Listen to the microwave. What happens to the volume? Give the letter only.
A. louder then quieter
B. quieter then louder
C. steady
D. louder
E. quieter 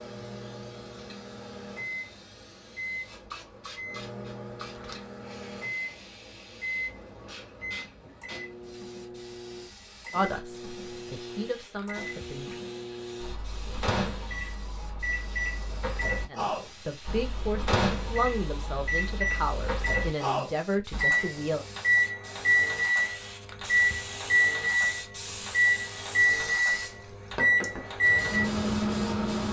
D.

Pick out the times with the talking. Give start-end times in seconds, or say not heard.
10.1-12.6, 16.3-21.6.